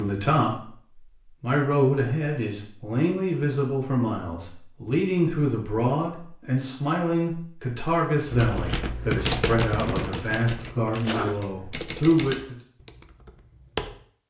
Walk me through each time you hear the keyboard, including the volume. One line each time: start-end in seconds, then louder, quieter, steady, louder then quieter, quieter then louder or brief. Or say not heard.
8.2-14.0 quieter.